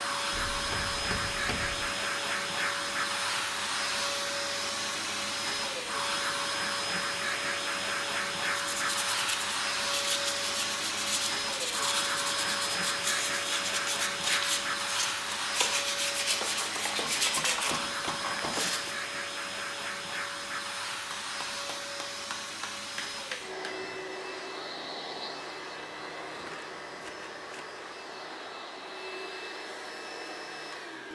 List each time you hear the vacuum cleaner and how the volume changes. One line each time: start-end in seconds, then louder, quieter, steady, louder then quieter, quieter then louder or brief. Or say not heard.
0.0-31.1 quieter.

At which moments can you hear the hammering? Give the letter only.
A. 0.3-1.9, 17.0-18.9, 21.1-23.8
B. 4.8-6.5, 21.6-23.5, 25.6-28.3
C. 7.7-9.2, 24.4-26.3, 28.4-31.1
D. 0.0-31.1
A.